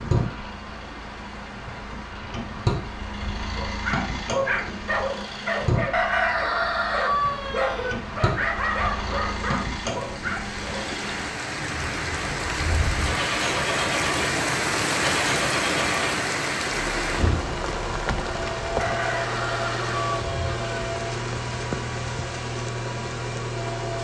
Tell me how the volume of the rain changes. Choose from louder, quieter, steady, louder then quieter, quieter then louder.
louder then quieter.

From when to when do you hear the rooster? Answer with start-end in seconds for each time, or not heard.
5.9-8.0, 18.8-20.6.